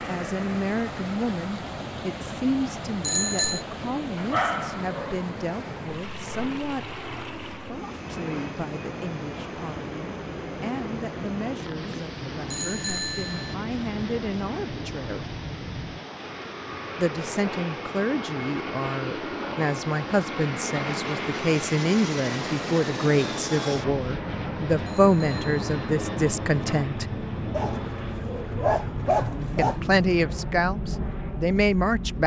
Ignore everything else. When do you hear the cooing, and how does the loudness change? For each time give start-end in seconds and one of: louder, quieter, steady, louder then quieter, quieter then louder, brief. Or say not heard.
not heard.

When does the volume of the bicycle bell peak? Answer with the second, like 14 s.
3 s.